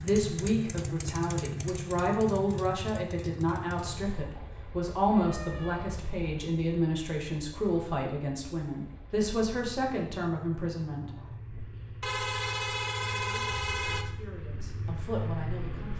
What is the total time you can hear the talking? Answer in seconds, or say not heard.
14 s.